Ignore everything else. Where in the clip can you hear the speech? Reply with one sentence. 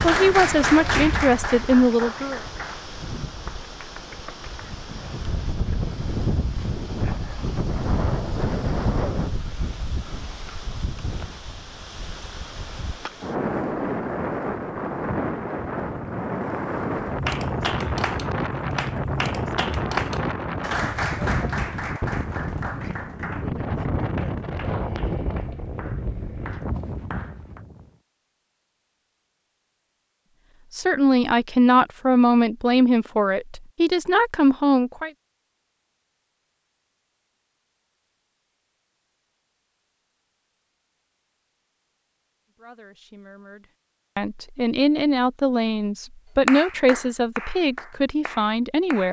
You can hear the speech from 0.0 to 2.4 s, from 30.8 to 35.1 s and from 42.6 to 49.0 s.